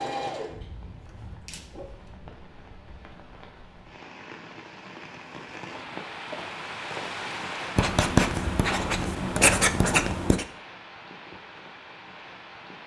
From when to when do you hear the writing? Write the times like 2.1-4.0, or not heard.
7.8-10.4.